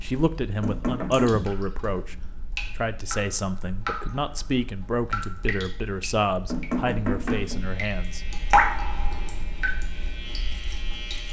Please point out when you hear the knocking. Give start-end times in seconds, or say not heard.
0.6-1.3, 6.5-7.7.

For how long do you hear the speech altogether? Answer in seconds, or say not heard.
8 s.